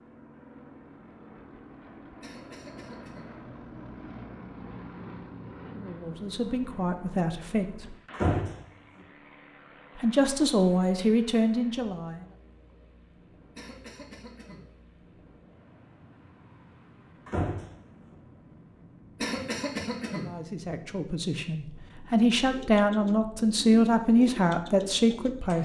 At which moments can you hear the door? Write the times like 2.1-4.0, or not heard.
8.1-8.6, 17.2-18.1.